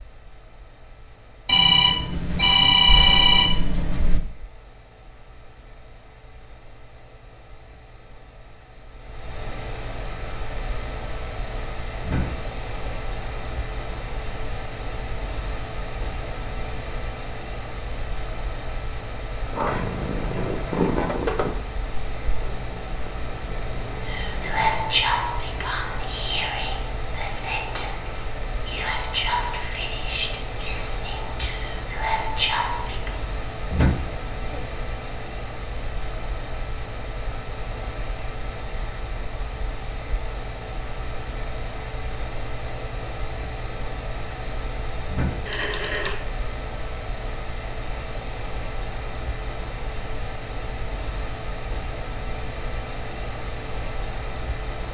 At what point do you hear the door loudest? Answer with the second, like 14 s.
34 s.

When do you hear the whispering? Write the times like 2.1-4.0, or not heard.
24.1-33.1.